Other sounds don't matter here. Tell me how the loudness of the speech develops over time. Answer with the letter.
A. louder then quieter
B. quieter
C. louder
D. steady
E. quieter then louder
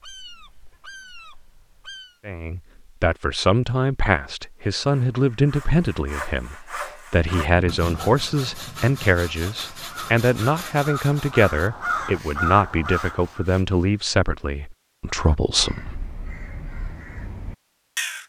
D.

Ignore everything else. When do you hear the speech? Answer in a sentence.
The speech can be heard from 2.2 to 16.1 s.